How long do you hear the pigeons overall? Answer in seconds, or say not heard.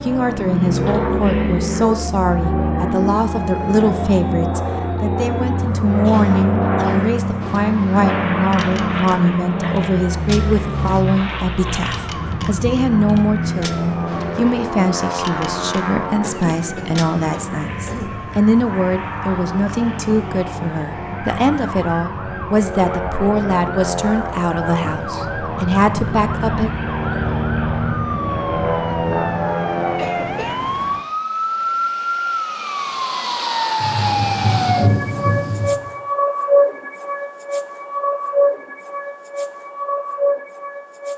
not heard.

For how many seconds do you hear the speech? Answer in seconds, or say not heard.
27 s.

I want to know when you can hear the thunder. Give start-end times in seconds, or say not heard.
33.8-35.7.